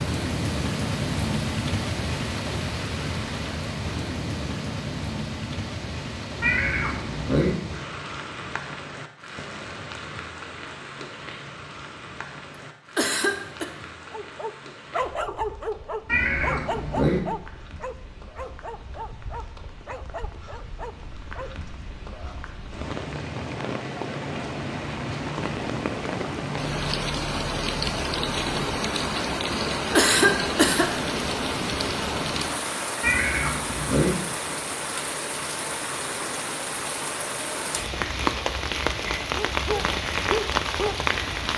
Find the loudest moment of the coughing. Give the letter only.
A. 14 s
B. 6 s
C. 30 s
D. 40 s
C.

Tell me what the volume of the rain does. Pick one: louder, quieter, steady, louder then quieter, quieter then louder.
quieter then louder.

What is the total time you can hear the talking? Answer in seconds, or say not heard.
not heard.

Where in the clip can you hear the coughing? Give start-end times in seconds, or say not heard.
12.9-13.7, 29.9-30.9.